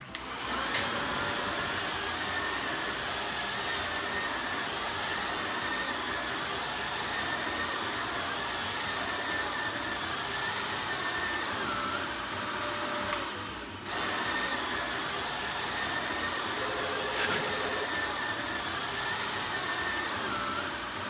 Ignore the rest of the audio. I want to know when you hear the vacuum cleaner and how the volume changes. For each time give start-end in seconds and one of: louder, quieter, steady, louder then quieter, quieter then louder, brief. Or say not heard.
0.0-21.0 steady.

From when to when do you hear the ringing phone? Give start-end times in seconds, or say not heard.
0.7-1.9, 16.6-17.9.